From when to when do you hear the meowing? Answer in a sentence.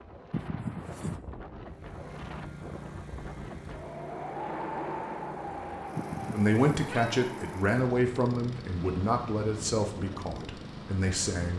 You can hear the meowing from 0.3 to 1.2 s and from 6.0 to 7.2 s.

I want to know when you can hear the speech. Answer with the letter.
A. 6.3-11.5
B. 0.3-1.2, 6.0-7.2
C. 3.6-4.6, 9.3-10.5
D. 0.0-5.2
A.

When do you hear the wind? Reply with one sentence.
You can hear the wind from 0.0 to 11.5 s.